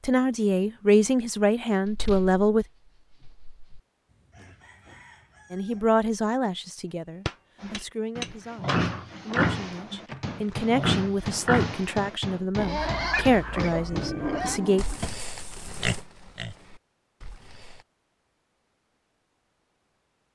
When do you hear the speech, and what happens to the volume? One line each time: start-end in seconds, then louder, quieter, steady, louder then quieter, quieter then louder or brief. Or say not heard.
0.1-2.6 brief
5.5-14.8 quieter then louder.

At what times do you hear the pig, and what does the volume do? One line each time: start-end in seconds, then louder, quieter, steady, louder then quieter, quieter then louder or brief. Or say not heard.
7.6-17.9 quieter.